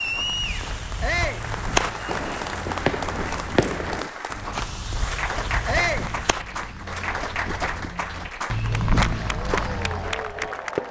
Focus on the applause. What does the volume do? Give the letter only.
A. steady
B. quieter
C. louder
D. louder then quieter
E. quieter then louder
A.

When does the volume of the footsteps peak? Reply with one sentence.
The volume of the footsteps peaks at 9 seconds.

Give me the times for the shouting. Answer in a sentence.
You can hear the shouting from 1.0 to 1.4 s and from 5.7 to 6.1 s.